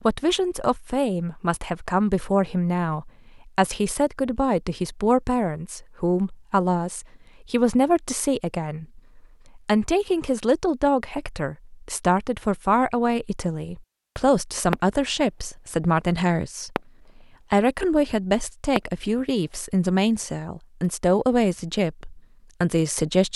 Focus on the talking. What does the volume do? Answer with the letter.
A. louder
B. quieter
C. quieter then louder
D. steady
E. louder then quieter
D.